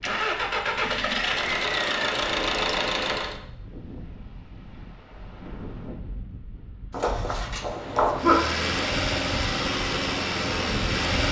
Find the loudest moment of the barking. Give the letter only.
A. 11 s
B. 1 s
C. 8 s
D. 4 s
C.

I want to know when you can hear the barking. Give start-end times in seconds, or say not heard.
6.9-8.4.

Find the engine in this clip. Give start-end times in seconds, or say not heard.
0.0-3.4, 8.2-11.2.